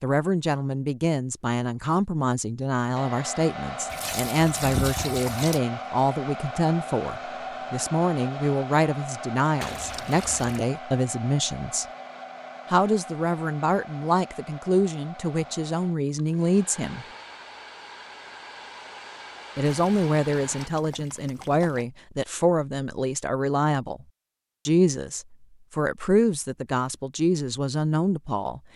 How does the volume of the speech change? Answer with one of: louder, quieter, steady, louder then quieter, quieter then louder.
steady.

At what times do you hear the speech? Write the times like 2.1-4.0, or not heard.
0.0-11.8, 12.7-17.1, 19.6-24.1, 24.6-28.6.